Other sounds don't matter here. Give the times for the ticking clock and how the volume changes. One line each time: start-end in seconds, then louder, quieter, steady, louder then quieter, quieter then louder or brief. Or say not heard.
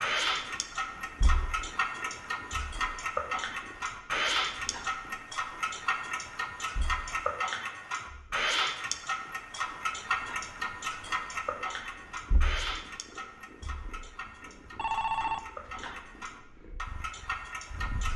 0.0-18.1 quieter.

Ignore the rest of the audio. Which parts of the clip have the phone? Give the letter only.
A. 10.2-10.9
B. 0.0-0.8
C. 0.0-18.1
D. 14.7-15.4
D.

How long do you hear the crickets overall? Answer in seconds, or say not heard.
not heard.